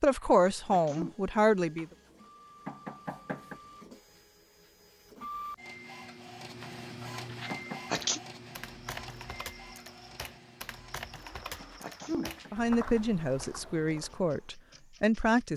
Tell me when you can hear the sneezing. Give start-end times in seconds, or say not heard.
0.1-1.1, 7.3-8.2, 11.2-12.7.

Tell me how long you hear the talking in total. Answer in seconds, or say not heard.
5 s.